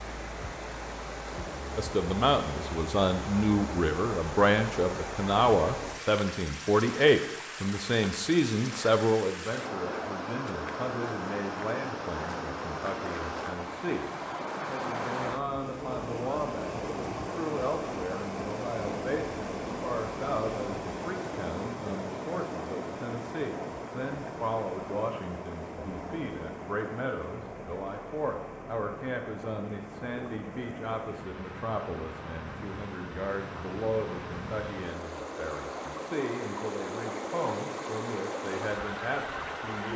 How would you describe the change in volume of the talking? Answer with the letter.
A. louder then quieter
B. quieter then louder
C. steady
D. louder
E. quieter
E.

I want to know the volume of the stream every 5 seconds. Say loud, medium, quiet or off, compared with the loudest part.
loud, loud, loud, loud, loud, medium, medium, loud.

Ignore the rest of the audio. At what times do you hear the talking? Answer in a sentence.
The talking can be heard from 1.8 to 39.9 s.